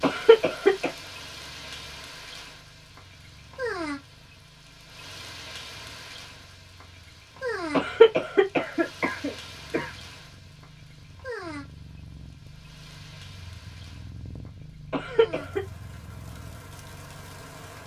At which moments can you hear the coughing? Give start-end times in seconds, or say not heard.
0.0-0.9, 7.7-9.9, 14.9-15.6.